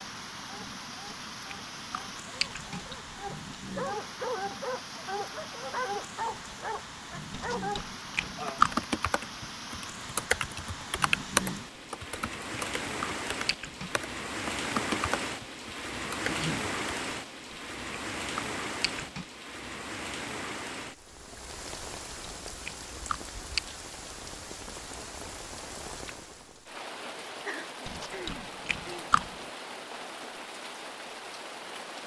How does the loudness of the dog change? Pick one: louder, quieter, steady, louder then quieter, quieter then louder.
louder.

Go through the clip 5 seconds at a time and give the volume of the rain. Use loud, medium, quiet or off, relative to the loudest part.
medium, medium, loud, loud, medium, medium, medium.